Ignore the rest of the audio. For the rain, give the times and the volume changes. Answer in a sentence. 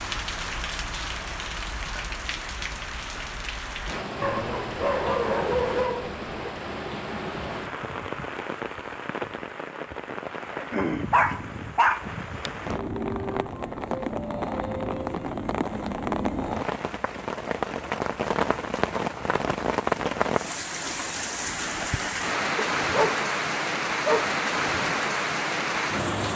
The rain can be heard from 0.0 to 26.3 s, getting louder.